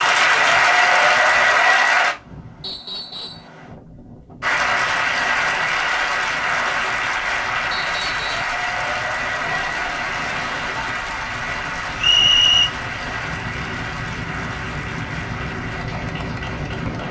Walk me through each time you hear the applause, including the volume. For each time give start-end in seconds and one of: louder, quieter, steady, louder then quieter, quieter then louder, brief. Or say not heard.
0.0-2.1 brief
4.4-17.0 quieter.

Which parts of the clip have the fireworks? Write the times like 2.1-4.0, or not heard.
not heard.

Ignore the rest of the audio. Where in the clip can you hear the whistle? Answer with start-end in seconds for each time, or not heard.
2.6-3.5, 7.7-8.5, 12.0-12.7.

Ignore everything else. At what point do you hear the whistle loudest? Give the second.
12 s.